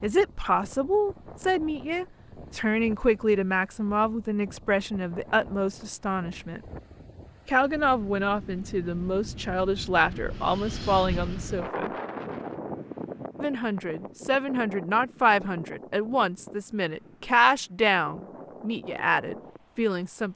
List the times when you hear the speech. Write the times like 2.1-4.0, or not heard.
0.0-6.6, 7.5-11.9, 13.4-20.3.